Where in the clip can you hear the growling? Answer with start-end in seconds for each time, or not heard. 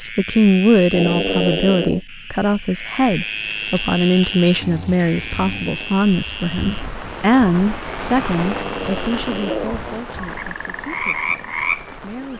0.9-2.0, 4.6-5.7, 8.3-9.9.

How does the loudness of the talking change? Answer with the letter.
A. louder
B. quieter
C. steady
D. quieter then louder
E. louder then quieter
B.